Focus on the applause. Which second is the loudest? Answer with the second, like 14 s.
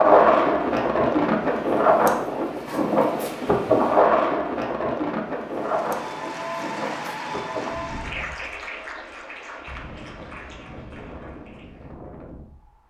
7 s.